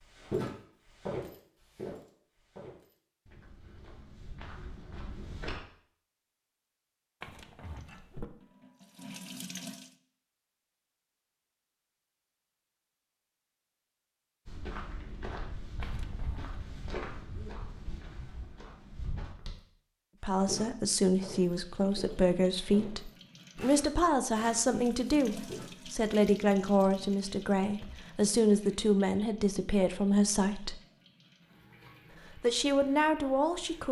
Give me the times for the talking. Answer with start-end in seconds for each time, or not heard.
20.2-30.8, 32.4-33.8.